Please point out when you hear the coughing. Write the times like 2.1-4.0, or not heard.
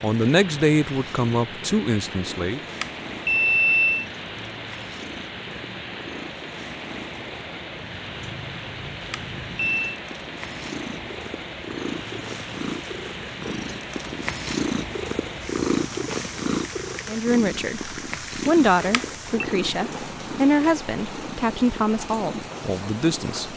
not heard.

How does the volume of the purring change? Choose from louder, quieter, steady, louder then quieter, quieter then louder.
louder then quieter.